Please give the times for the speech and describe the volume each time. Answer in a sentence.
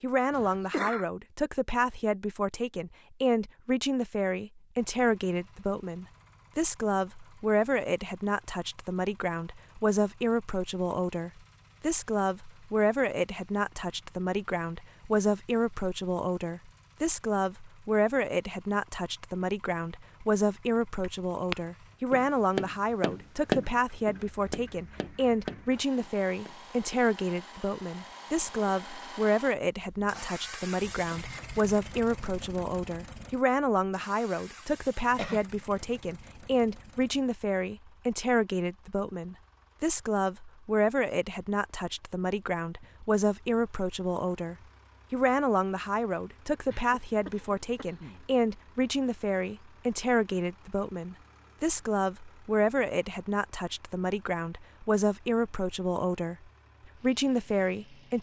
The speech can be heard from 0.0 to 56.4 s, at a steady volume; and briefly from 57.0 to 58.1 s.